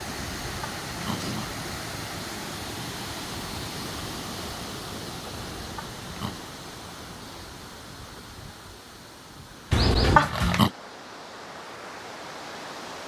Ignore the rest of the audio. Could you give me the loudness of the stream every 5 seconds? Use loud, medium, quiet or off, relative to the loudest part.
loud, medium, medium.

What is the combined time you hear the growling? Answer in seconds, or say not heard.
3 s.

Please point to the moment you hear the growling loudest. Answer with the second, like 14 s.
10 s.